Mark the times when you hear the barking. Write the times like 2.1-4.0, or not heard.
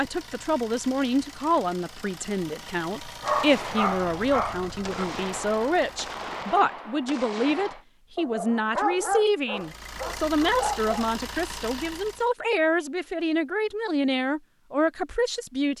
3.2-5.0, 8.2-11.1.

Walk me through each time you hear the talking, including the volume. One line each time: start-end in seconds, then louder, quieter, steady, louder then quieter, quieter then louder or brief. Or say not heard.
0.0-15.7 steady.